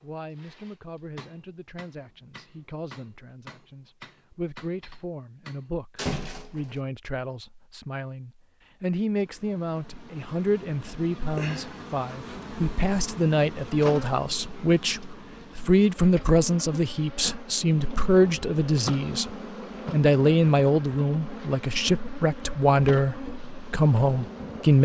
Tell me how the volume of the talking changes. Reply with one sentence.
The volume of the talking goes up.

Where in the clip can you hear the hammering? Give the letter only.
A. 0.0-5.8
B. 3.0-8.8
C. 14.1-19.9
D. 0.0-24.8
A.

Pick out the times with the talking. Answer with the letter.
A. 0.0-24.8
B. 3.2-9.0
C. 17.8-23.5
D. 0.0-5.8
A.